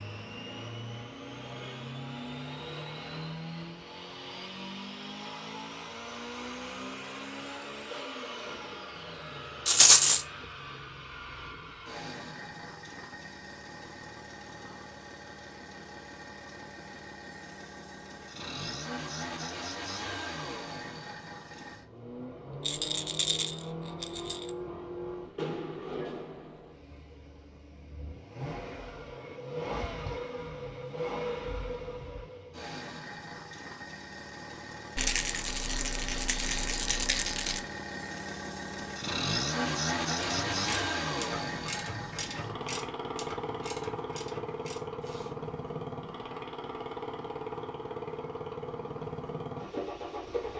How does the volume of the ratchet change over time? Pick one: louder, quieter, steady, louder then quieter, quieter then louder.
quieter.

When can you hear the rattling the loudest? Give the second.
10 s.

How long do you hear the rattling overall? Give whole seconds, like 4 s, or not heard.
5 s.